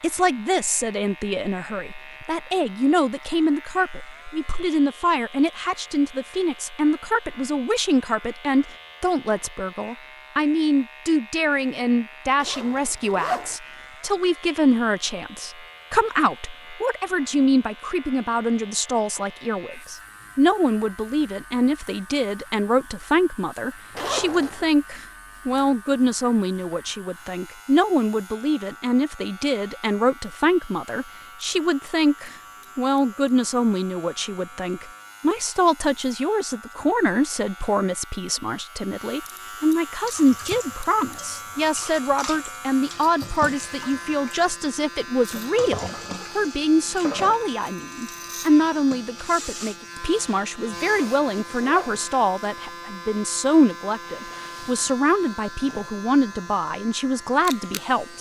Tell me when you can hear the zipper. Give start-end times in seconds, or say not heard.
12.4-13.6, 23.9-24.6, 50.9-52.0.